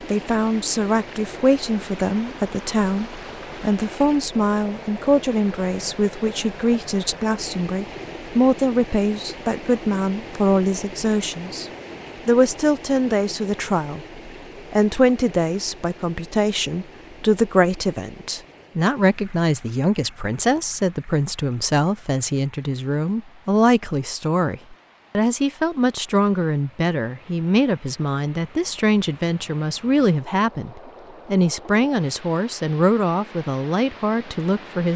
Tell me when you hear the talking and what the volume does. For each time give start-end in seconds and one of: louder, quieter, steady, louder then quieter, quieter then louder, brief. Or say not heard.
0.1-34.9 steady.